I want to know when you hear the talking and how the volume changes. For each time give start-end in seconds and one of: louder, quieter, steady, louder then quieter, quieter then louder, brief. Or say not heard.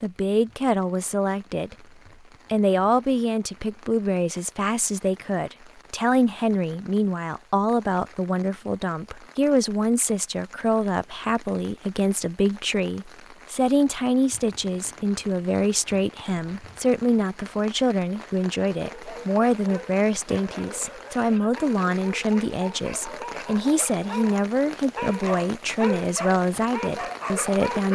0.0-1.8 brief
2.5-27.8 steady.